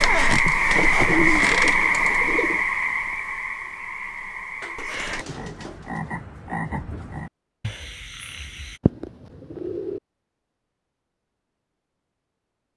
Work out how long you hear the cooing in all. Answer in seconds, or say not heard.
4 s.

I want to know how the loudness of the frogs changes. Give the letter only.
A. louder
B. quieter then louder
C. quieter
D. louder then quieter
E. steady
C.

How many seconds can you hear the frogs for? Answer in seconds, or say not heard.
9 s.